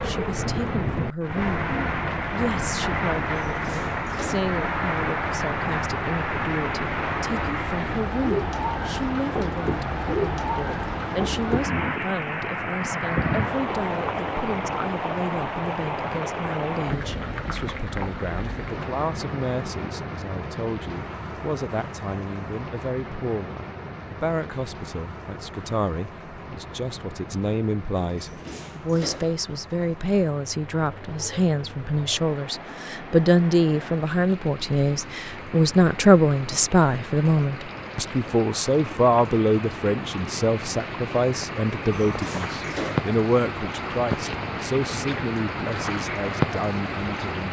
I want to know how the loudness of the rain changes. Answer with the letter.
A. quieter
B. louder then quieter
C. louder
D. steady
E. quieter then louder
E.